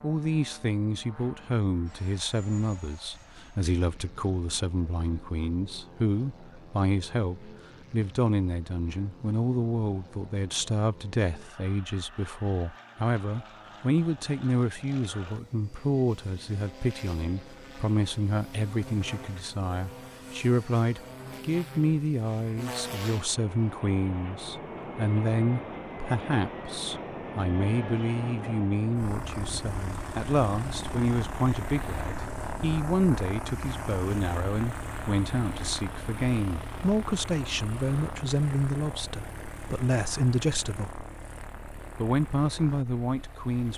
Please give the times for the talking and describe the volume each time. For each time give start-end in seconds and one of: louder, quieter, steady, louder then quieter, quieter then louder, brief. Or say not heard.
0.0-41.0 steady
42.0-43.7 brief.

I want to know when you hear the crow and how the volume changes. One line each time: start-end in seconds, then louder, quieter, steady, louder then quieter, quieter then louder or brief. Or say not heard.
not heard.